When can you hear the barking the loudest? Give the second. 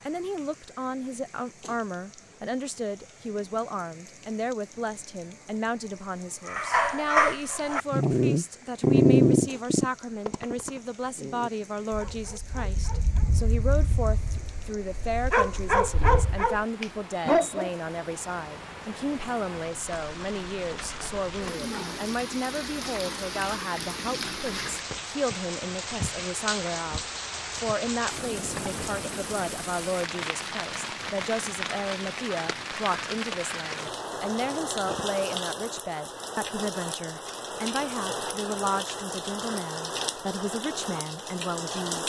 9 s.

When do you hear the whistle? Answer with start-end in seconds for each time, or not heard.
not heard.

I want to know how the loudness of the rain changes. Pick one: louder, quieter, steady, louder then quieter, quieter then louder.
louder.